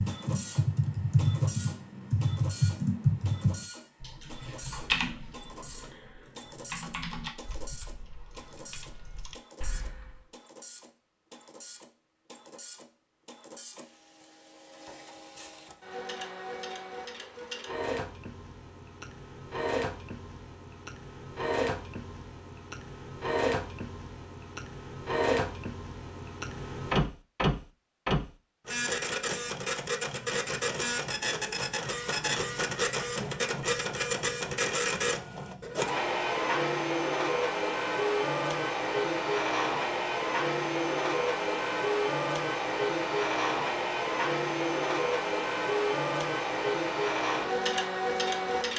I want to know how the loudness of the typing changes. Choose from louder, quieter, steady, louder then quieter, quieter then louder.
quieter.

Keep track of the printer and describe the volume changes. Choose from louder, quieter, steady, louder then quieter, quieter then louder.
louder.